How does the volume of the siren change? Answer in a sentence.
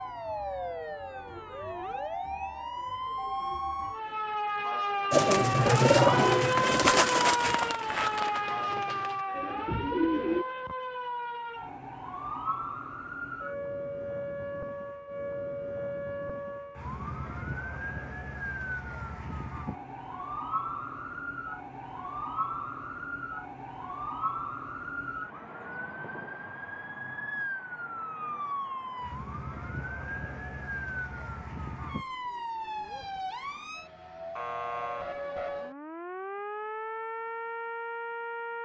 The loudness of the siren goes down.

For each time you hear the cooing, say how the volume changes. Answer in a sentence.
The cooing can be heard from 5.1 to 10.4 s, getting quieter then louder.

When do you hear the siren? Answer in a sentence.
You can hear the siren from 0.0 to 38.6 s.